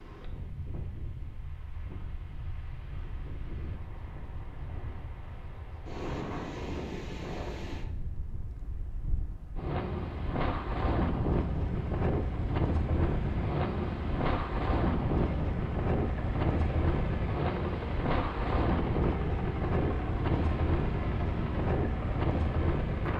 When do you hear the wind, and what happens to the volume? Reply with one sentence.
You can hear the wind from 0.0 to 23.1 s, getting louder.